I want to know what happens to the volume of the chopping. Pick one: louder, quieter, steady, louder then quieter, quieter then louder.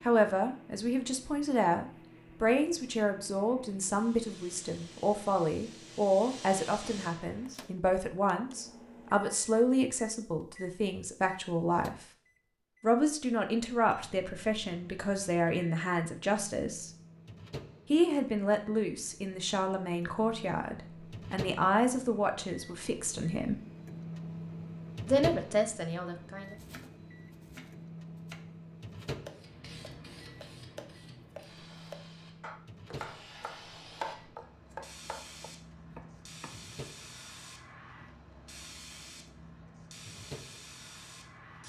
louder then quieter.